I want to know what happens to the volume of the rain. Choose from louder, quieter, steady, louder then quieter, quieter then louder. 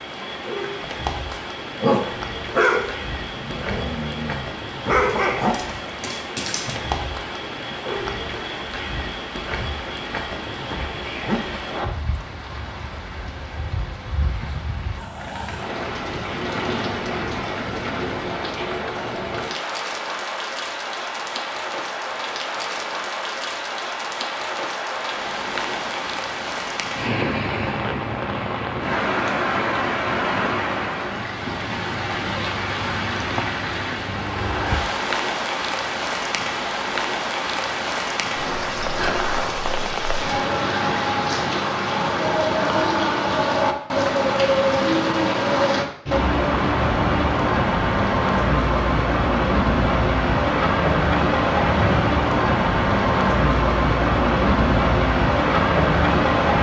louder.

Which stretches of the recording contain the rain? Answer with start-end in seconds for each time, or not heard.
0.0-56.5.